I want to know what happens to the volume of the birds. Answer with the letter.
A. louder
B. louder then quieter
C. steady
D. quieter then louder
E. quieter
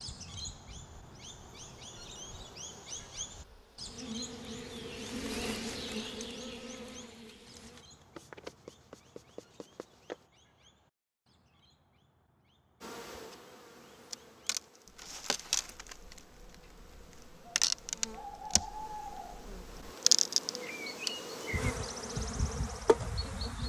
D.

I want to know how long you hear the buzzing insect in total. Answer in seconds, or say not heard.
21 s.